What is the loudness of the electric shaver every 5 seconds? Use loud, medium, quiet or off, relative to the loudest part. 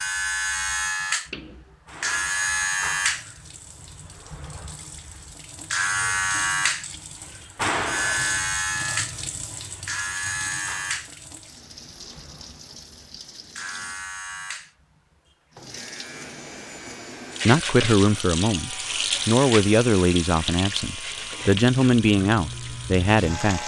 loud, loud, medium, quiet, medium.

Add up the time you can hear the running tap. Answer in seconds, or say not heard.
20 s.